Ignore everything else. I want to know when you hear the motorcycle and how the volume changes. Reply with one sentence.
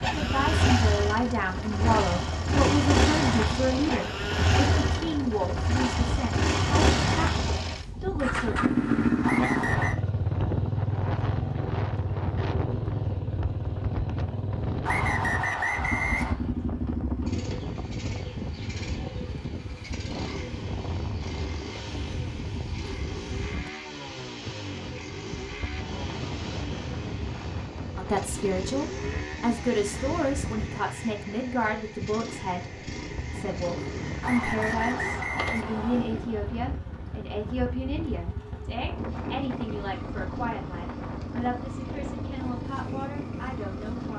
You can hear the motorcycle from 0.0 to 44.1 s, getting quieter.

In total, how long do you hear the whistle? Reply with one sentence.
The whistle can be heard for 4 seconds in total.